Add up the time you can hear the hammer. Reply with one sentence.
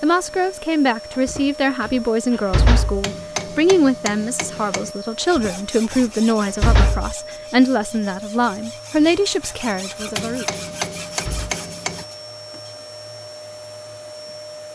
The hammer can be heard for 4 seconds in total.